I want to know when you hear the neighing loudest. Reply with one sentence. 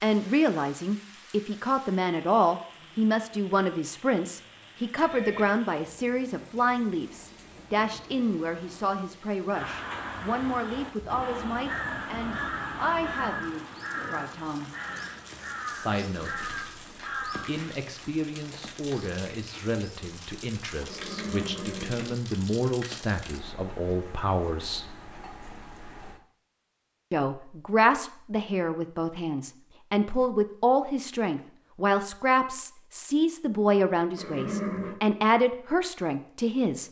The volume of the neighing peaks at 35 seconds.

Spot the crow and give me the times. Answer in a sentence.
You can hear the crow from 9.5 to 17.7 s.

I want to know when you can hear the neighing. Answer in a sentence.
The neighing can be heard from 4.9 to 5.5 s, from 20.9 to 22.1 s and from 34.1 to 35.0 s.